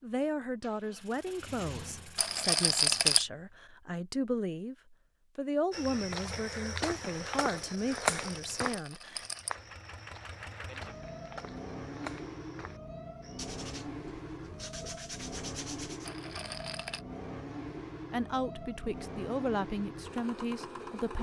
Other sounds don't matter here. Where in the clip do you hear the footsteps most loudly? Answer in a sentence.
The loudest moment of the footsteps is at 8 seconds.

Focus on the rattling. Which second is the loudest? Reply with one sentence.
The loudest moment of the rattling is at 3 seconds.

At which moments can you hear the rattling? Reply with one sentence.
The rattling can be heard from 2.1 to 3.2 s, from 7.8 to 9.5 s and from 16.1 to 17.1 s.